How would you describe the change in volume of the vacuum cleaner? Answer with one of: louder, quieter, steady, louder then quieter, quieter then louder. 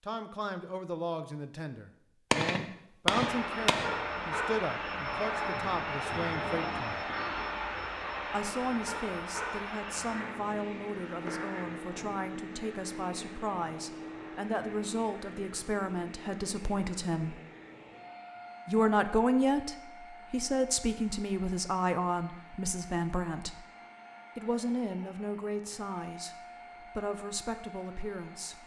quieter.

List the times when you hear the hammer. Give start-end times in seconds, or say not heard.
2.3-4.0.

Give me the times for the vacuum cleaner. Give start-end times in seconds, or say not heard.
3.0-28.6.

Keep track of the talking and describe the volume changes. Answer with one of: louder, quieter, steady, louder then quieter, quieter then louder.
louder then quieter.